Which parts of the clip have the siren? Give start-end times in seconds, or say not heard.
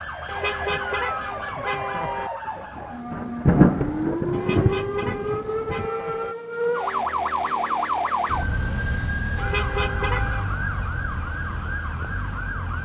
0.0-12.8.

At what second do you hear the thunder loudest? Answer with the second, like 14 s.
4 s.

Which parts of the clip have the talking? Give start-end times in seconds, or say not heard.
not heard.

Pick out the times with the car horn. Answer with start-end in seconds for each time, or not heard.
0.2-2.3, 4.3-6.3, 9.3-10.4.